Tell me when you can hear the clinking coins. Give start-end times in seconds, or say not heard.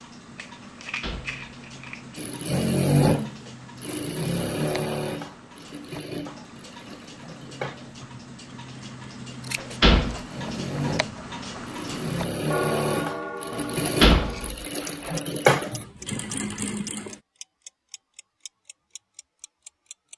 not heard.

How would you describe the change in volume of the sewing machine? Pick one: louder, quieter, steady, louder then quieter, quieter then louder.
quieter then louder.